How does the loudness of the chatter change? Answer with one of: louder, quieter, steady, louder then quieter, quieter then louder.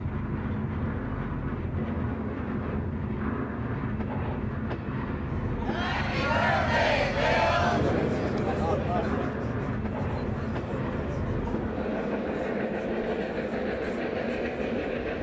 quieter.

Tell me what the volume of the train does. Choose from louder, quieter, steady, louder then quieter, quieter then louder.
steady.